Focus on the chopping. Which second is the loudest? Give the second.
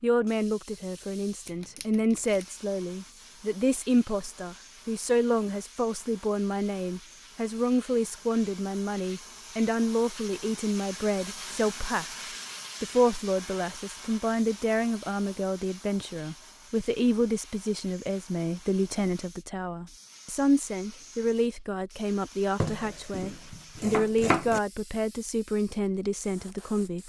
24 s.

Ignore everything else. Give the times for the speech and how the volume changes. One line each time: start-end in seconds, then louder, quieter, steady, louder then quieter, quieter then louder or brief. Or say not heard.
0.0-12.1 steady
12.8-27.0 steady.